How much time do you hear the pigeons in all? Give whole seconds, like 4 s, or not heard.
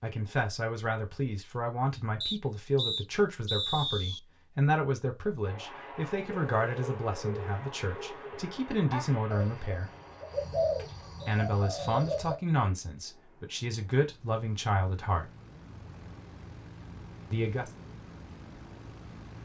6 s.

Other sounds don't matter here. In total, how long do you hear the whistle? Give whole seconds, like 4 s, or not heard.
3 s.